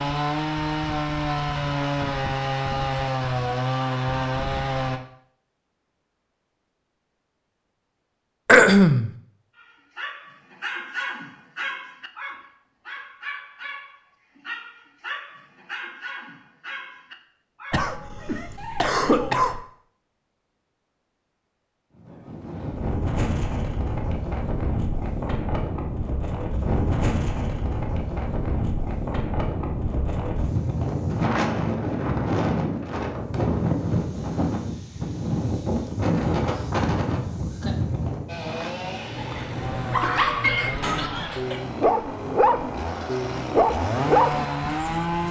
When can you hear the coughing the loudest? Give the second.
9 s.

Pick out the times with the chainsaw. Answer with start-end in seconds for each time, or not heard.
0.0-5.0, 38.2-45.2.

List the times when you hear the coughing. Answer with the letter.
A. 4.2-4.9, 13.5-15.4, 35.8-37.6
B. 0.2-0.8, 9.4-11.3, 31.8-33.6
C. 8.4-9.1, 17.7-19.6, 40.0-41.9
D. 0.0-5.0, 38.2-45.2
C.